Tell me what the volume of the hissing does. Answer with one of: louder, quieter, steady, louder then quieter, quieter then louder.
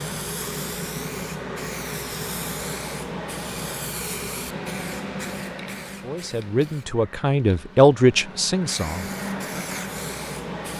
quieter then louder.